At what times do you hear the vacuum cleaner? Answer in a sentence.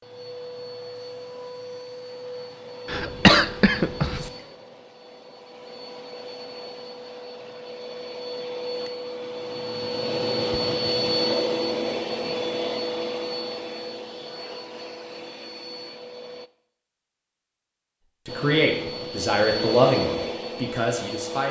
The vacuum cleaner can be heard from 0.0 to 16.5 s and from 18.2 to 21.4 s.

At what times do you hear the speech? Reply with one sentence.
The speech can be heard from 18.2 to 21.4 s.